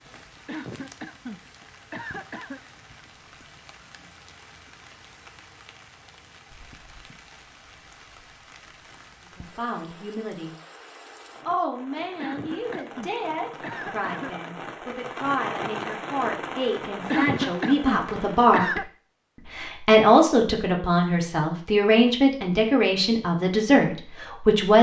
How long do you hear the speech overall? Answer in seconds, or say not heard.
14 s.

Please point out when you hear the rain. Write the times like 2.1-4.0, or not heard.
0.0-18.6.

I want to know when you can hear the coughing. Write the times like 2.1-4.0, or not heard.
0.5-2.6, 12.2-14.5, 17.1-18.9.